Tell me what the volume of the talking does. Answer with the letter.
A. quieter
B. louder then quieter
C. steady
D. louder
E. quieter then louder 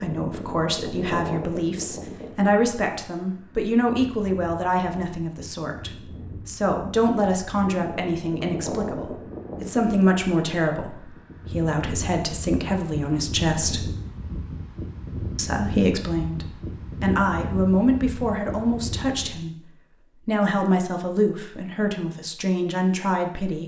C.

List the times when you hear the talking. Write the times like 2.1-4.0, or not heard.
0.0-13.8, 15.3-19.6, 20.2-23.6.